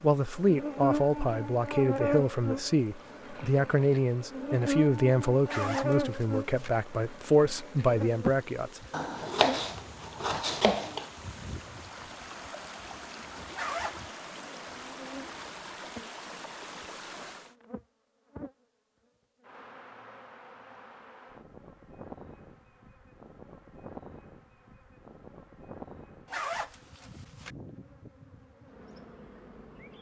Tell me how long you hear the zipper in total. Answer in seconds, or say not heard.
3 s.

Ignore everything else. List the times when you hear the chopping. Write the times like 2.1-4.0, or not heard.
8.9-11.1.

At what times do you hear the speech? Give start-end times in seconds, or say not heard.
0.0-9.3.